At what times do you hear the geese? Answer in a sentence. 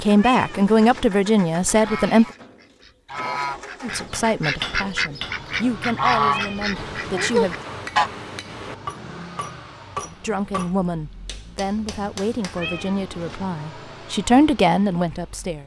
You can hear the geese from 1.6 to 8.1 s.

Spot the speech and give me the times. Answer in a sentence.
You can hear the speech from 0.0 to 2.2 s, from 3.8 to 7.5 s and from 10.1 to 15.6 s.